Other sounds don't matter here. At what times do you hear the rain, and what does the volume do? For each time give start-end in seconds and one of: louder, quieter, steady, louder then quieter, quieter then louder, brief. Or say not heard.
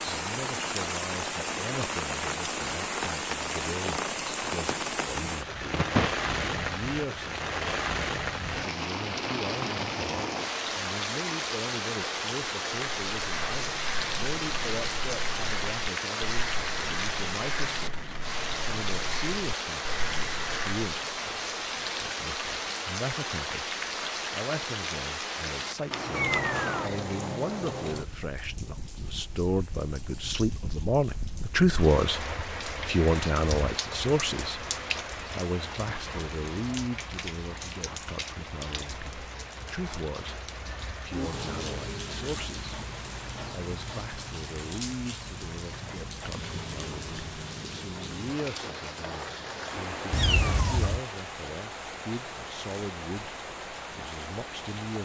0.0-55.0 quieter.